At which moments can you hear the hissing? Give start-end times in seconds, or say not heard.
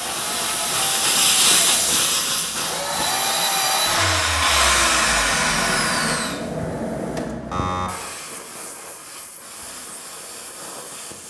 0.0-11.2.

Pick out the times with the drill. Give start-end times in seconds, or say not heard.
0.0-6.4.